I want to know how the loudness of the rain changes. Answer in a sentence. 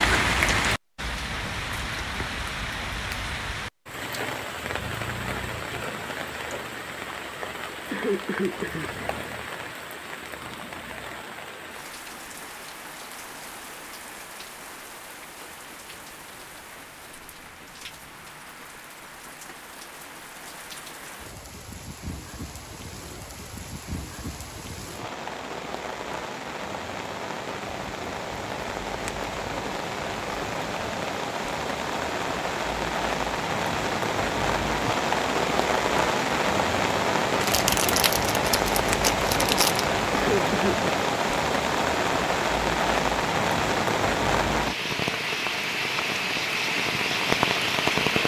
The volume of the rain goes down, then up.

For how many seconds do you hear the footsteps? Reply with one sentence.
You can't hear the footsteps here.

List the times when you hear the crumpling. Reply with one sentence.
The crumpling can be heard from 37.4 to 39.9 s.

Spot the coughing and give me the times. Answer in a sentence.
The coughing can be heard from 7.9 to 8.9 s and from 40.1 to 40.9 s.